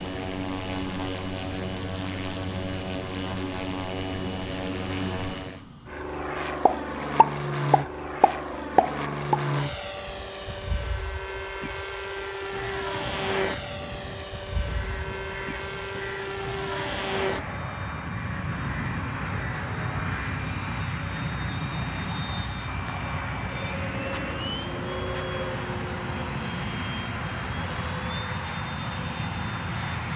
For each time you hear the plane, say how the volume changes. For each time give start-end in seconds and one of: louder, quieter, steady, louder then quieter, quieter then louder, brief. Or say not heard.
0.0-30.1 steady.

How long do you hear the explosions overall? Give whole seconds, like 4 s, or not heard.
3 s.